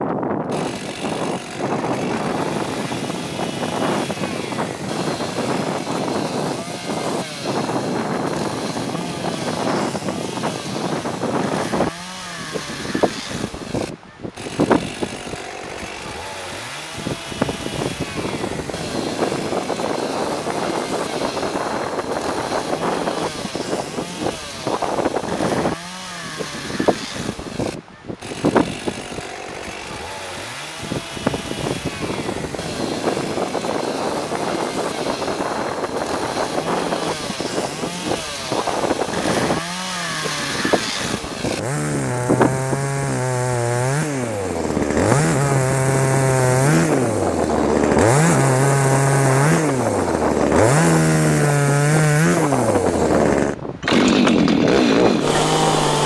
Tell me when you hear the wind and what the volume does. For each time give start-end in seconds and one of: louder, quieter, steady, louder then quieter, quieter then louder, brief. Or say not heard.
0.0-56.0 steady.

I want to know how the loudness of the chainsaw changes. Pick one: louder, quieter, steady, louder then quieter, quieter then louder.
louder.